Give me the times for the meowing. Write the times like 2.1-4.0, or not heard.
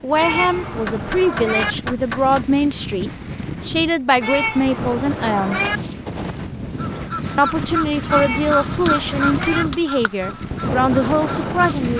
0.1-1.8, 4.2-5.8, 8.1-9.7.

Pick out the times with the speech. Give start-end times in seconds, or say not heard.
0.0-5.7, 7.3-11.9.